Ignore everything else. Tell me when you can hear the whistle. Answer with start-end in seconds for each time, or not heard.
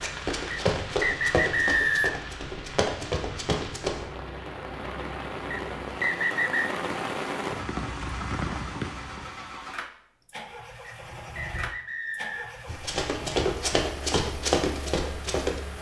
0.5-2.2, 5.5-6.7, 10.8-12.7.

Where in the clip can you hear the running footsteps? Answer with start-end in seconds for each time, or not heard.
0.0-4.1, 12.7-15.6.